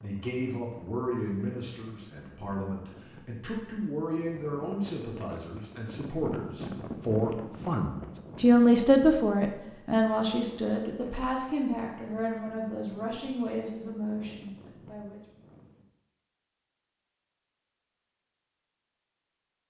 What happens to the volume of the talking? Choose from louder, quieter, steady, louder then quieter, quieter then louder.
louder then quieter.